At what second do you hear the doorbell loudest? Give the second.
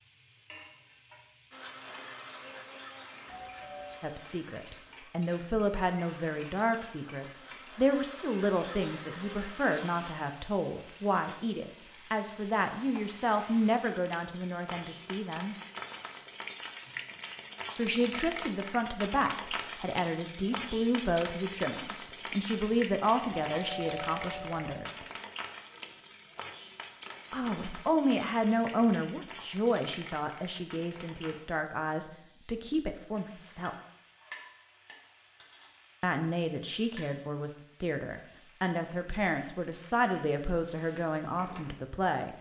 24 s.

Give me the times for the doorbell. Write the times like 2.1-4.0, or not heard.
3.2-4.0, 23.5-24.8.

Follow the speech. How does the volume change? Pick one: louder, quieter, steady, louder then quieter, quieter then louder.
steady.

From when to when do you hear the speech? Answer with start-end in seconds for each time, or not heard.
4.0-15.6, 17.8-25.1, 27.3-33.7, 36.0-42.3.